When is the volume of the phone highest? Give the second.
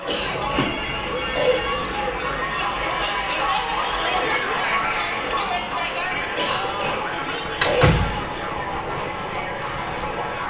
8 s.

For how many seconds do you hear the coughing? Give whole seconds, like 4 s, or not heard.
3 s.